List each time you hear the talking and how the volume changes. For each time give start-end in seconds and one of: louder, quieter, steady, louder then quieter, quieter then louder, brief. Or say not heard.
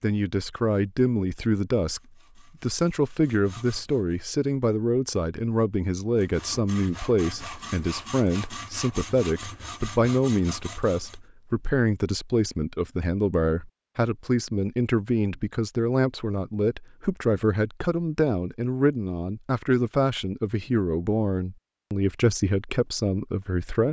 0.0-2.0 brief
2.6-23.8 steady.